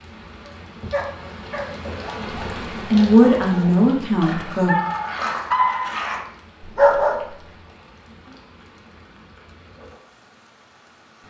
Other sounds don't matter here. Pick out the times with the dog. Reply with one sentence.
The dog can be heard from 0.5 to 7.2 s.